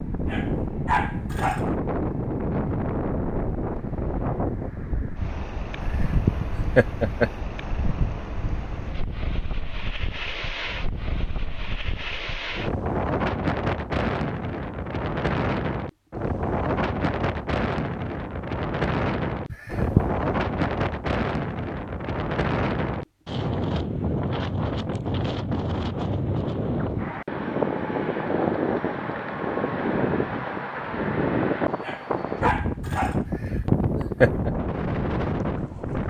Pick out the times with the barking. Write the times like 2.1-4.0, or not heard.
0.2-1.7, 31.8-33.2.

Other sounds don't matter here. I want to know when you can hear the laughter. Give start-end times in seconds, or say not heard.
5.8-7.3, 19.5-20.1, 33.2-34.5.